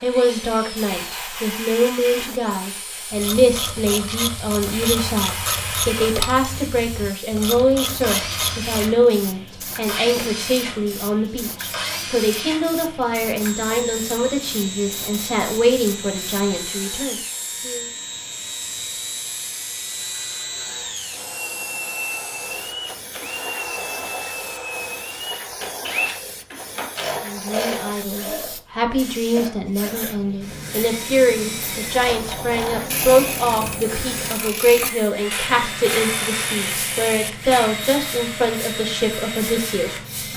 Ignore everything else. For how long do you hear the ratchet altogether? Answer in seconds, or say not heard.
12 s.